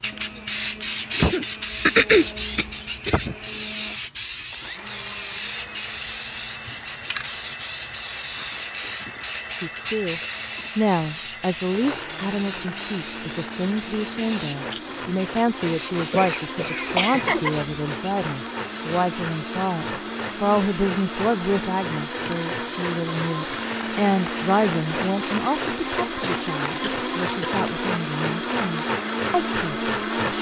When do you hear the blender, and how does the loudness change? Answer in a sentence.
The blender can be heard from 0.0 to 30.3 s, getting louder.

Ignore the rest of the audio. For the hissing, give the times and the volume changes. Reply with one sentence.
You can hear the hissing from 0.0 to 30.3 s, getting quieter.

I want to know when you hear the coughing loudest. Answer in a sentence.
The loudest moment of the coughing is at 2 seconds.